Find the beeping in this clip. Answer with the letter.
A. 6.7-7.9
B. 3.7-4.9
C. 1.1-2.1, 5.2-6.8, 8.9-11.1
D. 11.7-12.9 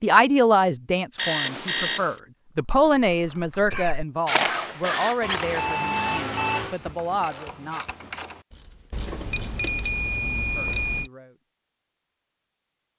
C.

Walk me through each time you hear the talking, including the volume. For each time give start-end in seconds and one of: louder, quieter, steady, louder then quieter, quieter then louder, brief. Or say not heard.
0.0-7.9 quieter
10.2-11.3 brief.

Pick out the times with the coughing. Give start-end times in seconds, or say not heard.
3.7-4.9.